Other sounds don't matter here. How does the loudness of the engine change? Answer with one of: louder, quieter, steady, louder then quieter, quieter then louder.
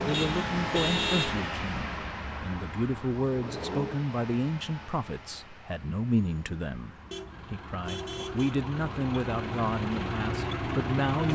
quieter then louder.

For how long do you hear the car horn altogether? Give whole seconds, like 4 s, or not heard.
3 s.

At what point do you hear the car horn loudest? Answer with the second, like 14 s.
1 s.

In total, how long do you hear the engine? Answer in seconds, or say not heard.
11 s.